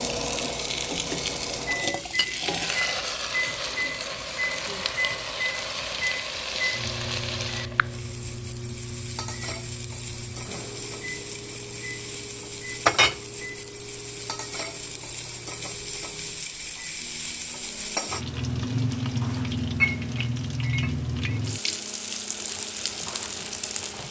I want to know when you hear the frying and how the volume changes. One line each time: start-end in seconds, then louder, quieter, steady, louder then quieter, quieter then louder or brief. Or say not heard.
0.0-24.0 quieter then louder.